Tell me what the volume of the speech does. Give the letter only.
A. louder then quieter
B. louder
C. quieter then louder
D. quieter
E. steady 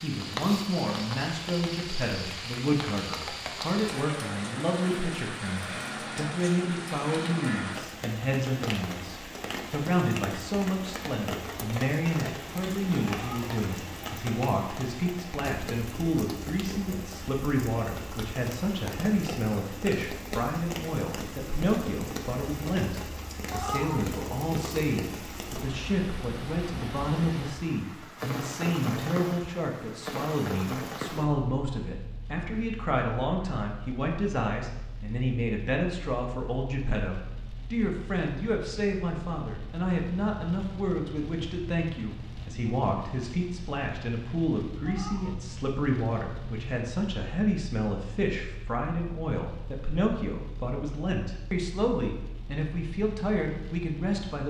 E.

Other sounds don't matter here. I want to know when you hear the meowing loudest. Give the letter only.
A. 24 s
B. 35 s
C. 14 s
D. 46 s
A.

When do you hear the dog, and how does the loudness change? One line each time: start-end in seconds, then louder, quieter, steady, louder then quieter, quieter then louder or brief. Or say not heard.
not heard.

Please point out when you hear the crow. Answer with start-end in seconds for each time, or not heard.
not heard.